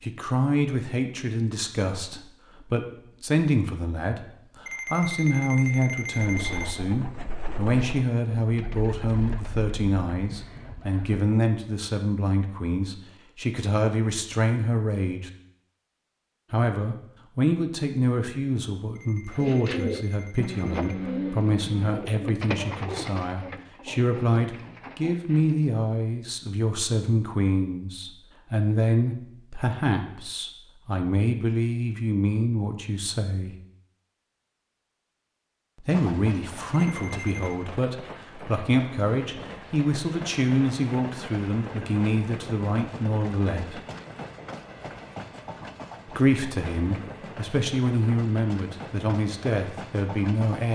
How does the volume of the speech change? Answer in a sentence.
The loudness of the speech stays about the same.